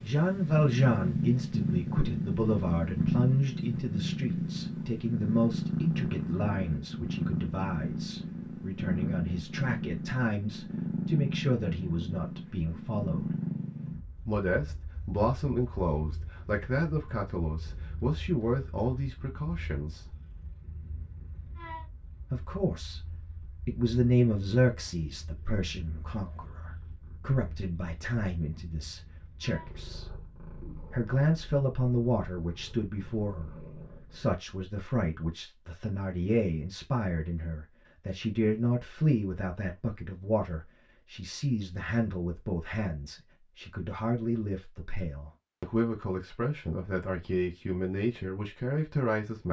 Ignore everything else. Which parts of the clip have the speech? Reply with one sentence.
You can hear the speech from 0.0 to 13.3 s, from 14.2 to 20.1 s, from 22.3 to 30.1 s and from 30.9 to 49.4 s.